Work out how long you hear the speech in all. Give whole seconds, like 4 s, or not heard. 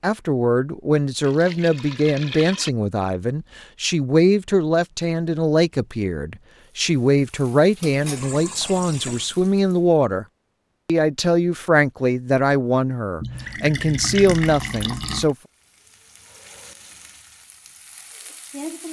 15 s.